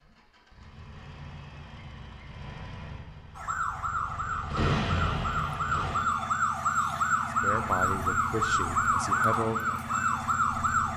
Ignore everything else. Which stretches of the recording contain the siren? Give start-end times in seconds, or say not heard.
3.4-10.9.